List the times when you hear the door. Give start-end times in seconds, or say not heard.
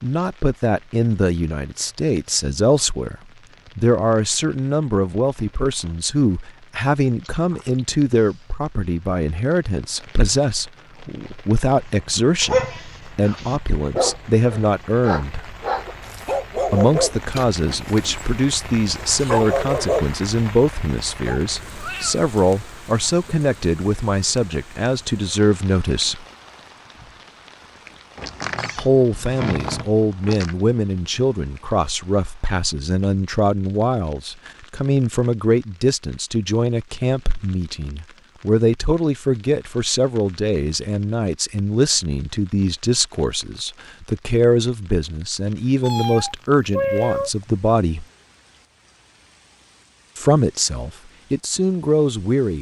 28.1-30.6.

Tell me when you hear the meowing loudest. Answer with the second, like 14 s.
47 s.